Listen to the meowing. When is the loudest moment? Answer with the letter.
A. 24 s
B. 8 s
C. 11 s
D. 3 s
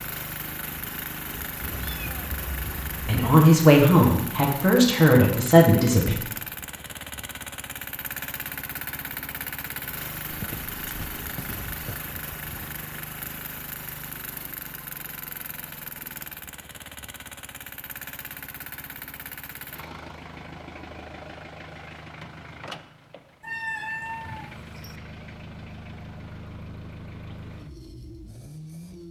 A.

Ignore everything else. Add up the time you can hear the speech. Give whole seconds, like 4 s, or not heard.
3 s.